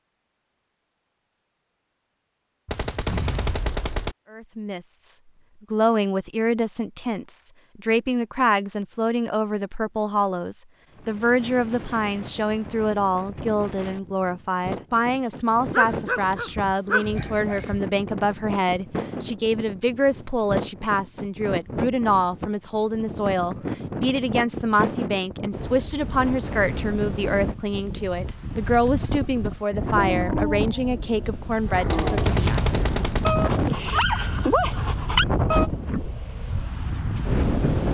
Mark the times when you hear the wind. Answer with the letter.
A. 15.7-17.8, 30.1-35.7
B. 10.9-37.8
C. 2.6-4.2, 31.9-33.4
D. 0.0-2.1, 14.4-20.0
B.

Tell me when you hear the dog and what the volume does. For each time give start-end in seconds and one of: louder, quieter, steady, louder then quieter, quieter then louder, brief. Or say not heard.
15.7-17.8 brief
30.1-35.7 louder.